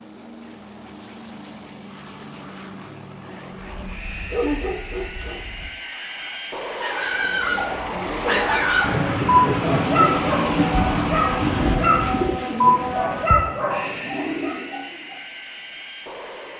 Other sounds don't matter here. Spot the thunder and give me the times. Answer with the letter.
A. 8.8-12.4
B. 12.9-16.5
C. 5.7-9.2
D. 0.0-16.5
A.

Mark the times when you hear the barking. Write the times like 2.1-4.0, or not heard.
3.8-14.6.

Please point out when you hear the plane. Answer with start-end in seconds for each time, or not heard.
0.0-16.5.